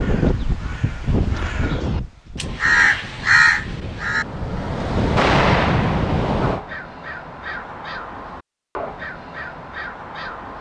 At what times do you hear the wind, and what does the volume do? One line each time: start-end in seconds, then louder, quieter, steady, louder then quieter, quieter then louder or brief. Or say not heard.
0.0-6.6 quieter then louder.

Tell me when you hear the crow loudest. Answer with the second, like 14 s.
3 s.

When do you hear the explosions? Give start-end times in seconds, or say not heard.
5.2-6.2.